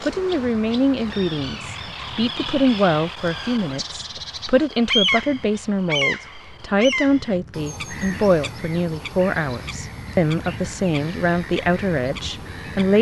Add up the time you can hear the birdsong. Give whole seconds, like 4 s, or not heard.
13 s.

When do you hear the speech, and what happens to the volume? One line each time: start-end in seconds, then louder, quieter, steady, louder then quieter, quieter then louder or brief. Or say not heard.
0.0-12.9 steady.